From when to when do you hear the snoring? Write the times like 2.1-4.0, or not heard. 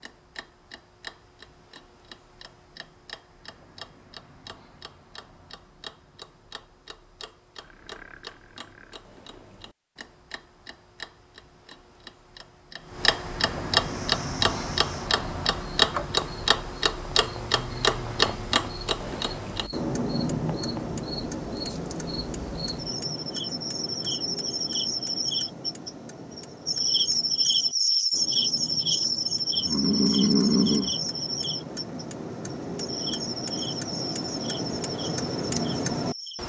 7.5-9.6, 17.1-18.6, 29.6-30.9.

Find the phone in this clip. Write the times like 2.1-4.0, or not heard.
not heard.